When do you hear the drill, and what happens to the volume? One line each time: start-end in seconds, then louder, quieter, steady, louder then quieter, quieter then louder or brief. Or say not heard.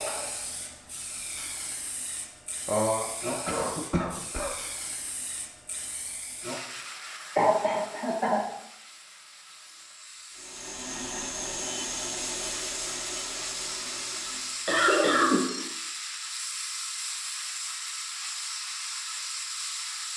10.3-14.8 quieter.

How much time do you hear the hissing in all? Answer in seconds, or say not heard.
20 s.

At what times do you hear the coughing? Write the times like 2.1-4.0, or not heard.
2.6-4.5, 7.3-8.4, 14.7-15.6.